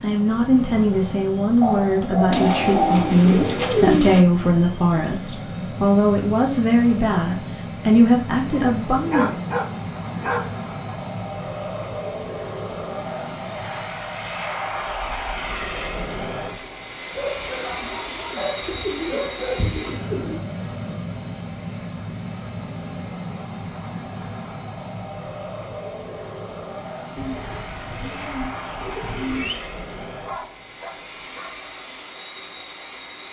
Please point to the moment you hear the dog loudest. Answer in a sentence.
The loudest moment of the dog is at 3 seconds.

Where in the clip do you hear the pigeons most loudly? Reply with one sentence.
The volume of the pigeons peaks at 4 seconds.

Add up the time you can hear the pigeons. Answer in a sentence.
You can hear the pigeons for 6 seconds altogether.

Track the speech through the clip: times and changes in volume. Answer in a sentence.
You can hear the speech from 0.0 to 9.4 s, at a steady volume.